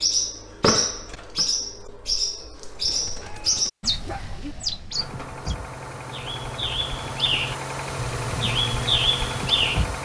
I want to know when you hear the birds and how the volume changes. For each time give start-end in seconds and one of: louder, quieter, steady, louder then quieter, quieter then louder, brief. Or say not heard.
0.0-9.8 quieter then louder.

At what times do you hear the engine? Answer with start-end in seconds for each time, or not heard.
4.9-10.0.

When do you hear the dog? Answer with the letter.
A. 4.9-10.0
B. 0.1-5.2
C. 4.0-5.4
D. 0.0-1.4
C.